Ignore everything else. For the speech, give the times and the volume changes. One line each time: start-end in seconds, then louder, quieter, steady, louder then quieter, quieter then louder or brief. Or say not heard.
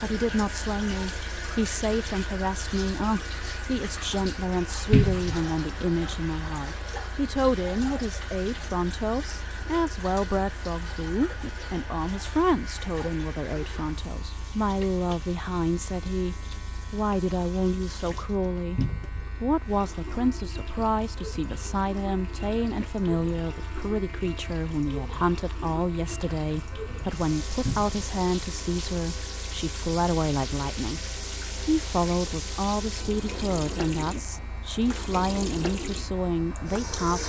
0.0-37.2 steady.